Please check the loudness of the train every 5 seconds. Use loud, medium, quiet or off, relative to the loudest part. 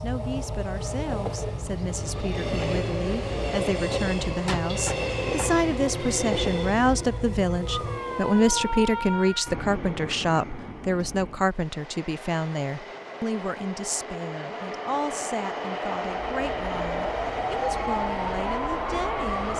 loud, loud, medium, loud.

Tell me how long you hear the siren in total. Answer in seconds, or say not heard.
13 s.